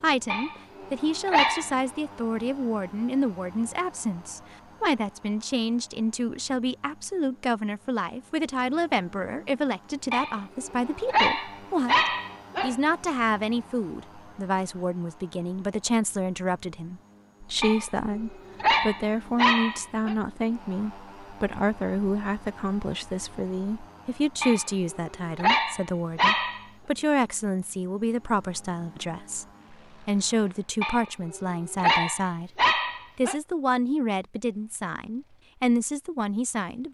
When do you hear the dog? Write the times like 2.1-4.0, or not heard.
0.3-1.8, 10.1-12.8, 17.6-20.1, 24.4-26.6, 30.8-33.4.